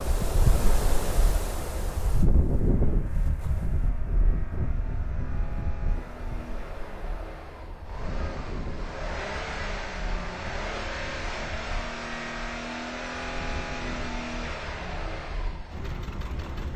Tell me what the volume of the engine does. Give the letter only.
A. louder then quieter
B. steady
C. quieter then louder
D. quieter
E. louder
E.